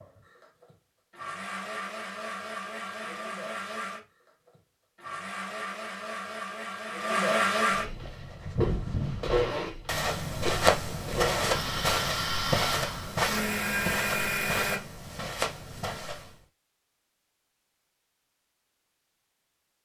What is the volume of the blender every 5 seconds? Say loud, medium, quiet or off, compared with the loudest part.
medium, loud, loud, off.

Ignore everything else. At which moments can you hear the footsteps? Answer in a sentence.
You can hear the footsteps from 7.8 to 16.4 s.